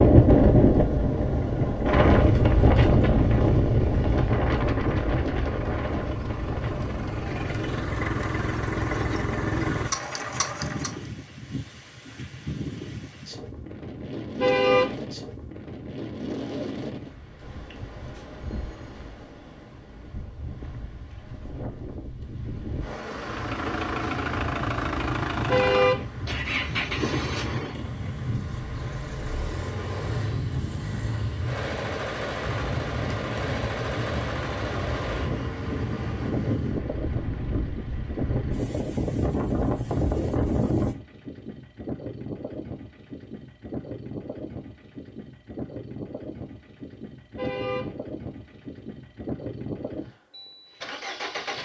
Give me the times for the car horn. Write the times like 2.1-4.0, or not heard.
14.3-14.9, 25.4-26.1, 47.4-48.0.